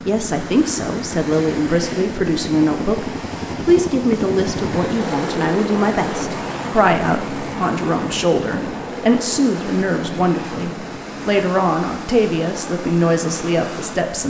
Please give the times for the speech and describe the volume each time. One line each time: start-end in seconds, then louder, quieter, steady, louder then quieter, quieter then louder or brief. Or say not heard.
0.1-14.2 steady.